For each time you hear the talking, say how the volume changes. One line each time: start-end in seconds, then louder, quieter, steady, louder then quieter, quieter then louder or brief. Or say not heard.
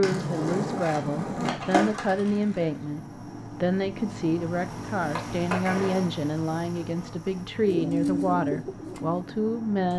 0.0-9.9 steady.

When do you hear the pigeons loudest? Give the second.
8 s.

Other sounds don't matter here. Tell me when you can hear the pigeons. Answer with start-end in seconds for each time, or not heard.
7.7-9.9.